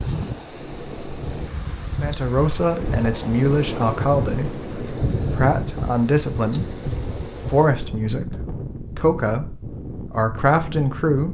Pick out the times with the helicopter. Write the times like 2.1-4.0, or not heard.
not heard.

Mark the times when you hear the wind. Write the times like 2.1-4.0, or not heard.
0.0-11.2.